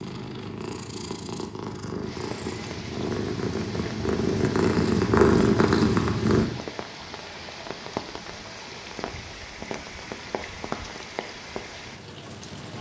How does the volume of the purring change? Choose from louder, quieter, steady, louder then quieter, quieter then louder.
louder.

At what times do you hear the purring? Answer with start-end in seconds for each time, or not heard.
0.0-6.5.